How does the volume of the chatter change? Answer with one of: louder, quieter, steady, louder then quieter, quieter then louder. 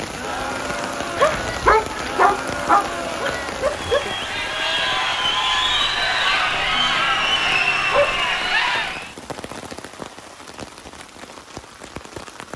louder.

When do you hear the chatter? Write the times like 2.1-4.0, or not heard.
0.0-9.2.